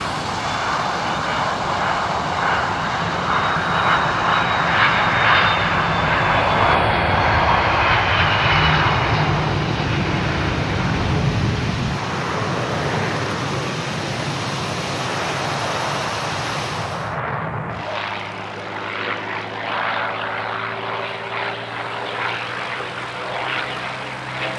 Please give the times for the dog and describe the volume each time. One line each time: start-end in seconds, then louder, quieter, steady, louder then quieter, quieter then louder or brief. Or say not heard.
not heard.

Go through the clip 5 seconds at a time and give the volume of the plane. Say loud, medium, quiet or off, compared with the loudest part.
loud, loud, medium, medium, medium.